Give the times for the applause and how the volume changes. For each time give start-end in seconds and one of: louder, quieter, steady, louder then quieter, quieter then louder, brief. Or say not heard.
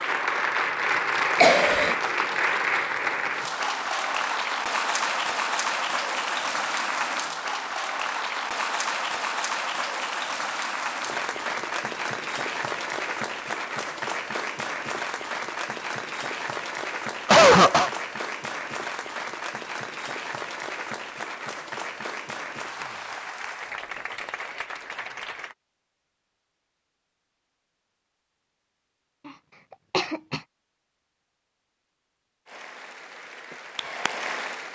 0.0-25.6 quieter
32.5-34.7 brief.